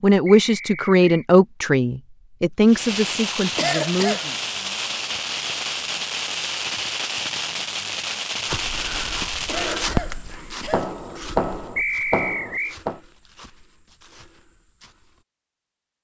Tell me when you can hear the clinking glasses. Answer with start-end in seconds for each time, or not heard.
not heard.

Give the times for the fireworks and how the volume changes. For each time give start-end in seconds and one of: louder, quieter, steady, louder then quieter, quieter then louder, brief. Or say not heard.
2.6-13.0 steady.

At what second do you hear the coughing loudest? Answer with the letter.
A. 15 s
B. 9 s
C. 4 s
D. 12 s
C.